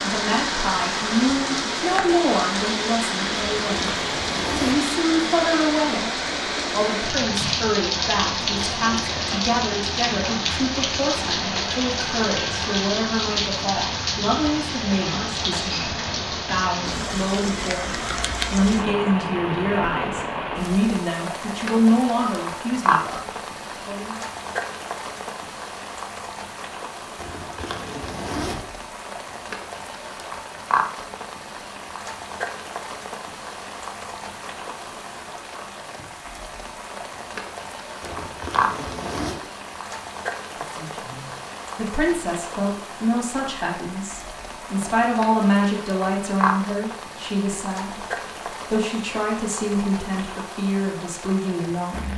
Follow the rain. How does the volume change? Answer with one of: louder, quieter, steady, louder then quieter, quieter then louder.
quieter.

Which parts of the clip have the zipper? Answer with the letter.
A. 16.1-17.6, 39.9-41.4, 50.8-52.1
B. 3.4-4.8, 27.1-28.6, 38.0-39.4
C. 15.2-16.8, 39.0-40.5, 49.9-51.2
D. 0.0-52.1
B.